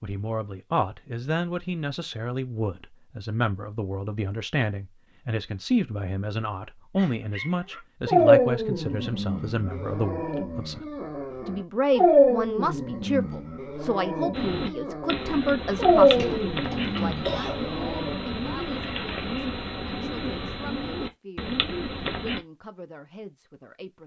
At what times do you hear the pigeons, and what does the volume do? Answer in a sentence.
You can hear the pigeons from 14.3 to 22.4 s, at a steady volume.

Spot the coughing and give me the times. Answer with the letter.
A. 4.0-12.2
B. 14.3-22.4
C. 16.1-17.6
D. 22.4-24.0
C.